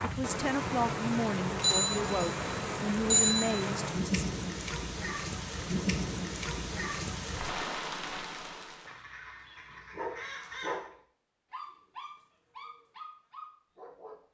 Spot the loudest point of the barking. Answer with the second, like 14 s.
11 s.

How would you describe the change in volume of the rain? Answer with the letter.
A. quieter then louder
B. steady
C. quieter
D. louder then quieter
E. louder
B.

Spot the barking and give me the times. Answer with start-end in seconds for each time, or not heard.
9.9-14.2.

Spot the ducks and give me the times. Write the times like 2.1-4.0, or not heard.
8.8-10.9.